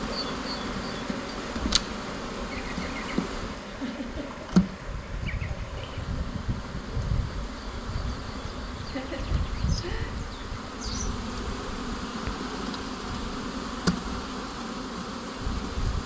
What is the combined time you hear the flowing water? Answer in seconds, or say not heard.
11 s.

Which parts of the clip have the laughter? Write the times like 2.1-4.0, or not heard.
3.5-4.5, 8.6-10.2.